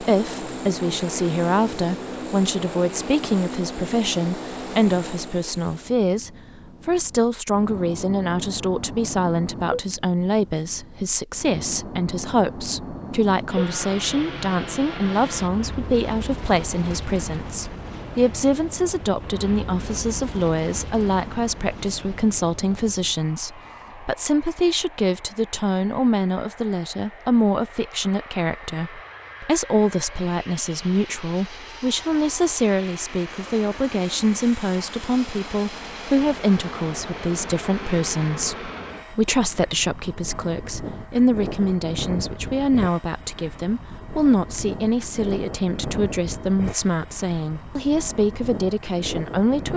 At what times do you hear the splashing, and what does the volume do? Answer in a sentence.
The splashing can't be heard in this clip.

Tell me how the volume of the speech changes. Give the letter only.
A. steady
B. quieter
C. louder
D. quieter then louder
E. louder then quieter
A.